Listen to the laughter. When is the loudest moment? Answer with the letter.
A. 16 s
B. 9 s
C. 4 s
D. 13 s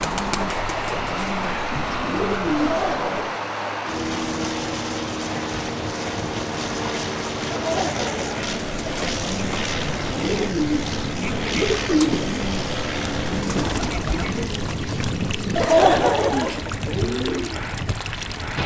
A.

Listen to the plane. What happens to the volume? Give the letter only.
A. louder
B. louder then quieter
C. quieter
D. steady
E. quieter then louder
D.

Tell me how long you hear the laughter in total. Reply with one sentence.
You can hear the laughter for 3 seconds altogether.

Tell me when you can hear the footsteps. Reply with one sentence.
The footsteps can't be heard in this clip.